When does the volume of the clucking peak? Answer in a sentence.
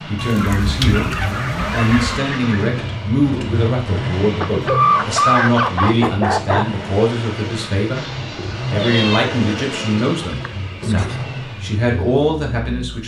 The loudest moment of the clucking is at 5 seconds.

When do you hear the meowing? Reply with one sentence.
The meowing can be heard from 0.1 to 2.2 s and from 7.9 to 9.2 s.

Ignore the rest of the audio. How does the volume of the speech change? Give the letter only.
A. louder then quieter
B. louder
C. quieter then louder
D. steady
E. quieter
D.